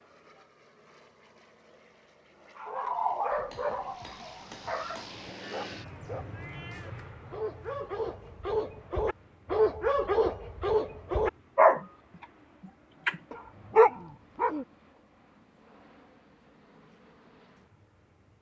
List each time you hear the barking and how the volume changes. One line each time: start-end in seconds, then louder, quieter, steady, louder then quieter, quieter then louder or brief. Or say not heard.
2.6-12.2 quieter then louder
13.1-14.7 brief.